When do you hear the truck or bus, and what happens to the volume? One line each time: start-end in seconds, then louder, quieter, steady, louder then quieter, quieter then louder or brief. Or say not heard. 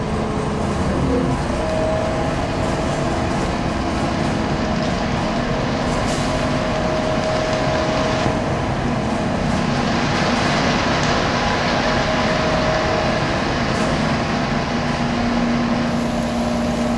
0.0-16.9 steady.